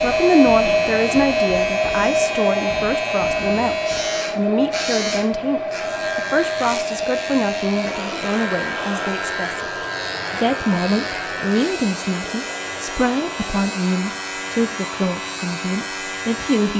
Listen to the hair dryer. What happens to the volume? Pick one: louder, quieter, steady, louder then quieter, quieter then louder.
quieter.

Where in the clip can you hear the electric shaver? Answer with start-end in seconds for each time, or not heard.
0.0-16.7.